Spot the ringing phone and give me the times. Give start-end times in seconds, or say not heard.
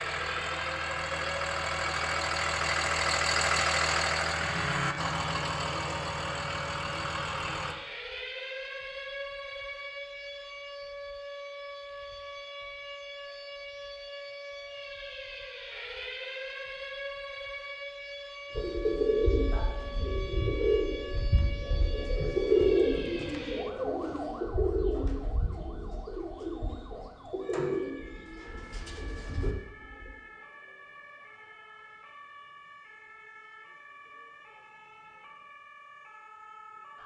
not heard.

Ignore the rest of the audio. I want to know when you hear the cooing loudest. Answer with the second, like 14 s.
23 s.